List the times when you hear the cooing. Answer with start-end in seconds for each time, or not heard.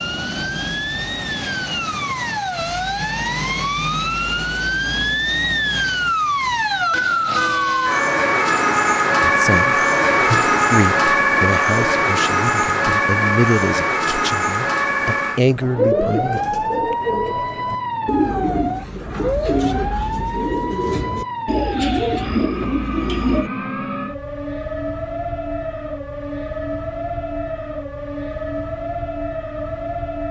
15.6-23.5.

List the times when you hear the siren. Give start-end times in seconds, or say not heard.
0.0-30.2.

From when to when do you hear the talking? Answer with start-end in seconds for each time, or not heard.
9.2-16.4.